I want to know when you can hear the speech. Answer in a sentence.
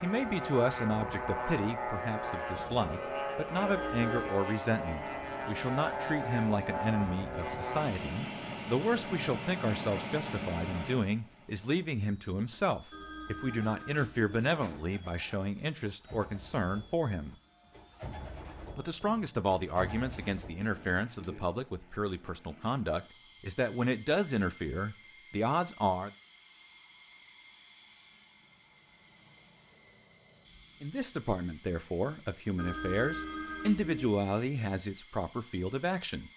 You can hear the speech from 0.0 to 17.4 s, from 18.8 to 26.1 s and from 30.8 to 36.3 s.